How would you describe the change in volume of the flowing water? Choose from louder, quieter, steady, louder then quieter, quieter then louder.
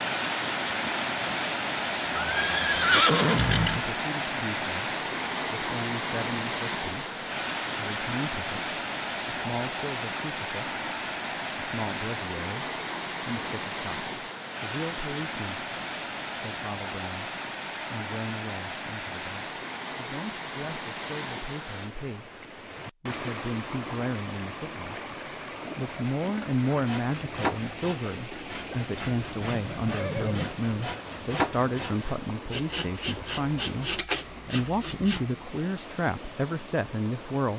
quieter.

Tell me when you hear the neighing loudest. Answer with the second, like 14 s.
3 s.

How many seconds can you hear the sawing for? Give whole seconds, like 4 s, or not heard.
9 s.